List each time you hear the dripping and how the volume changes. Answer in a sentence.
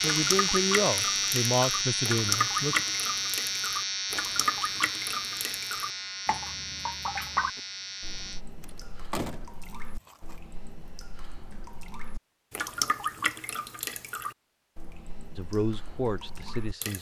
You can hear the dripping from 0.0 to 16.9 s, getting quieter.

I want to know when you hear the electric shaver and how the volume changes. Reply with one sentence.
The electric shaver can be heard from 0.0 to 8.4 s, getting quieter.